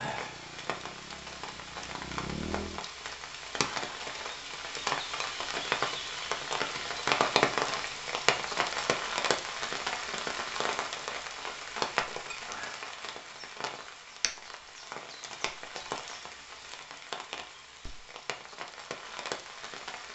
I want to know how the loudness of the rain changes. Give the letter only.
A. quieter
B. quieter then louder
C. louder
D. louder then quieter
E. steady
D.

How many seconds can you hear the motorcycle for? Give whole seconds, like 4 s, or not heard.
3 s.